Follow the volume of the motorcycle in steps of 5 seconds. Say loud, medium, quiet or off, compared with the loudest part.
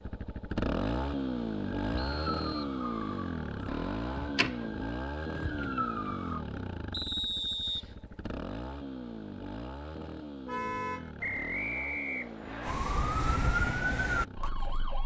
loud, medium, medium.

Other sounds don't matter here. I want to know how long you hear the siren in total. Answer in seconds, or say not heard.
7 s.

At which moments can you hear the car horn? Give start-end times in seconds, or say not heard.
3.6-4.3, 10.4-11.2.